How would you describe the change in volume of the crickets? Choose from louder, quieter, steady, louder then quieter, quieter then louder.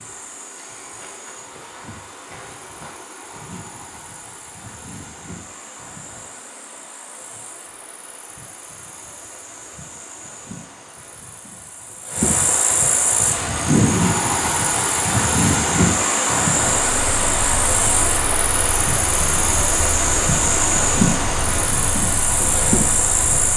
louder.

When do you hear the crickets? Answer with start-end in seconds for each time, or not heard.
0.0-23.5.